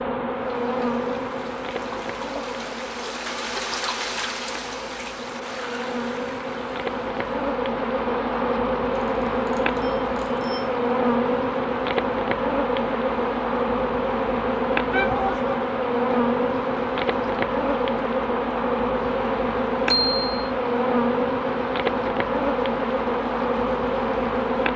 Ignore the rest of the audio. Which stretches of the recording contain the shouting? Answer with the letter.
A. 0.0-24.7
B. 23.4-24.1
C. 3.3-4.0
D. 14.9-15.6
D.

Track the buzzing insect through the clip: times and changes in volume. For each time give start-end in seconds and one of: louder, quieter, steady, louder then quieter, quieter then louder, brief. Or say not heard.
0.0-24.7 louder.